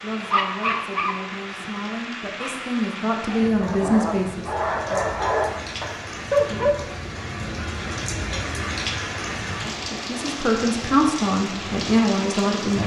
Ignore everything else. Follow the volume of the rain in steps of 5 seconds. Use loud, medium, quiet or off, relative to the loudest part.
medium, loud, loud.